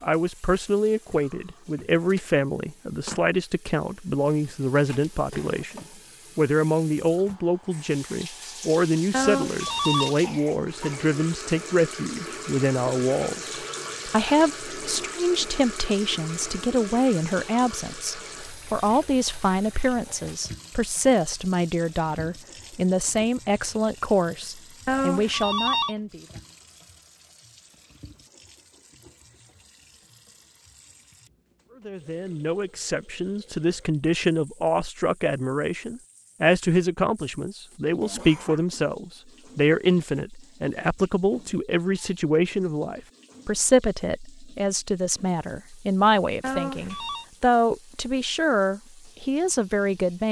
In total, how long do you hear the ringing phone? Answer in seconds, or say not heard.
3 s.